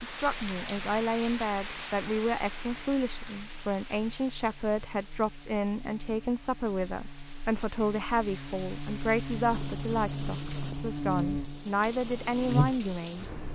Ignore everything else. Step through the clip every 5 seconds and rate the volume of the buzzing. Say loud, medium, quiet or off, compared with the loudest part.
quiet, medium, loud.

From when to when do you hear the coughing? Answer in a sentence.
You can't hear the coughing here.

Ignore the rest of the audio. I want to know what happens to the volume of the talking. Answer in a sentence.
The volume of the talking stays about the same.